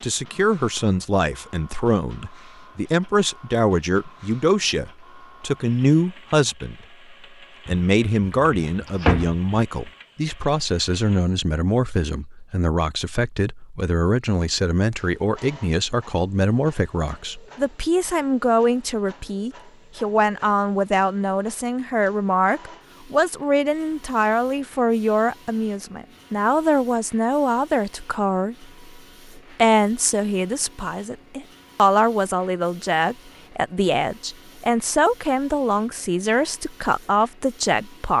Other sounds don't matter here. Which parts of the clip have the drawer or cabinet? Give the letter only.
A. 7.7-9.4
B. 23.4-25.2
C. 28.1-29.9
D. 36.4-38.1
A.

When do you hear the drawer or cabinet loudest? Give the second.
9 s.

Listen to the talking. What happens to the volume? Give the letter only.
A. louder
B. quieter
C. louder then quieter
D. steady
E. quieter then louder
D.